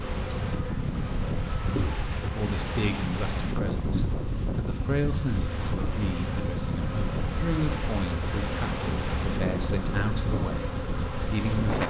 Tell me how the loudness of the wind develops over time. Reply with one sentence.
The volume of the wind stays about the same.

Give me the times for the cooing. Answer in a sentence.
You can't hear the cooing here.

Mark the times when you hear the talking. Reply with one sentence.
You can hear the talking from 2.2 to 11.8 s.